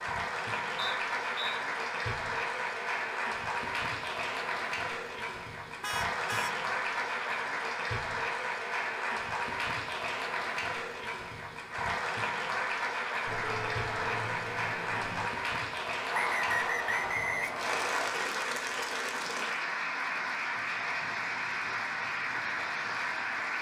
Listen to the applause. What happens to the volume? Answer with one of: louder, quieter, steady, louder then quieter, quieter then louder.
steady.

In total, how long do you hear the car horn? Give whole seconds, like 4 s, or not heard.
3 s.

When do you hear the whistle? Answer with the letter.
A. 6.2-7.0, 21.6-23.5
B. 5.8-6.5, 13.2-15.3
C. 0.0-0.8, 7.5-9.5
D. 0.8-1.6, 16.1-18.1
D.